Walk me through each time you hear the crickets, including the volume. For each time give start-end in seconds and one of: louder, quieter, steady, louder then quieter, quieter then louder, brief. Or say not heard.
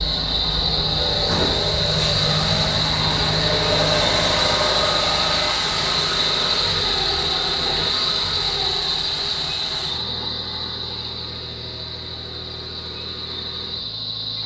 0.0-14.4 quieter.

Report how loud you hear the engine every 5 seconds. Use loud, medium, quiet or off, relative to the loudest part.
loud, loud, quiet.